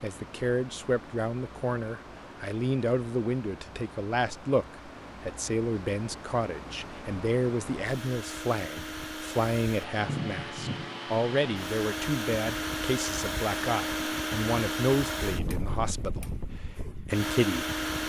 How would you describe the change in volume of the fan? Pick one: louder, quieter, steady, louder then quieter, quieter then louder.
louder.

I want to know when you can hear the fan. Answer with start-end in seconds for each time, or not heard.
0.0-18.0.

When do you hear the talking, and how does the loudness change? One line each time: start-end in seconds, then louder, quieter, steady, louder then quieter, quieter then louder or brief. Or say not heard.
0.0-17.9 steady.